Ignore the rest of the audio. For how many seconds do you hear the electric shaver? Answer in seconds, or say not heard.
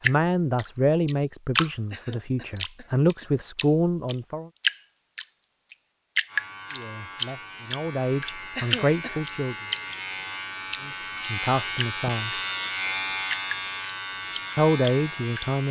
9 s.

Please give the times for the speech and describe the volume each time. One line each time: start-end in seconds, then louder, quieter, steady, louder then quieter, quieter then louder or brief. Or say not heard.
0.0-4.5 quieter then louder
6.7-9.6 brief
10.8-12.3 brief
14.6-15.6 brief.